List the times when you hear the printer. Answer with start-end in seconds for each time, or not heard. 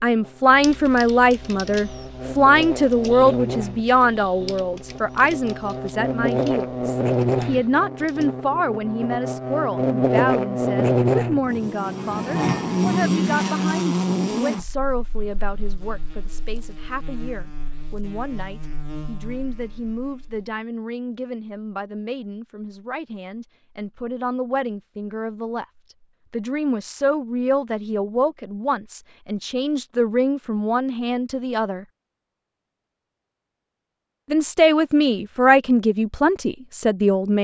not heard.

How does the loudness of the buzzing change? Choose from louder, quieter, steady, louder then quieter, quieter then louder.
louder then quieter.